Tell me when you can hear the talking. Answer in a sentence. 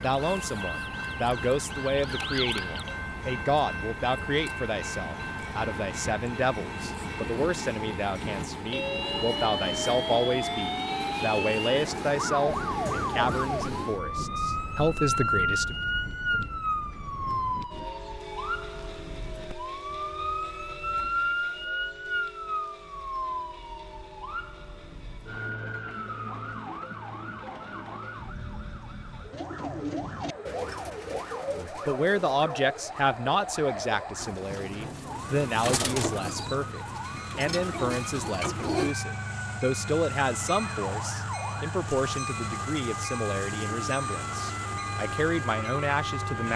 The talking can be heard from 0.0 to 15.8 s and from 31.4 to 46.5 s.